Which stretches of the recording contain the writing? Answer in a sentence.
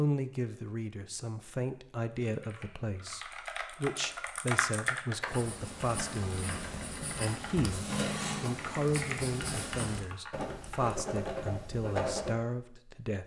You can hear the writing from 5.2 to 12.3 s.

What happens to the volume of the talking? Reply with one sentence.
The loudness of the talking stays about the same.